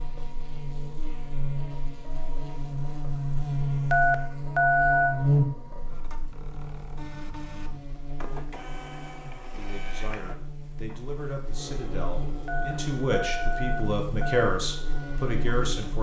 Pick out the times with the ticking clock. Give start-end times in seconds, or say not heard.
not heard.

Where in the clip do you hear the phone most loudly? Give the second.
5 s.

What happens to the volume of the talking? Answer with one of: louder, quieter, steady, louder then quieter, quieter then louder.
louder.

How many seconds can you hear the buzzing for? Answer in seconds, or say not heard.
16 s.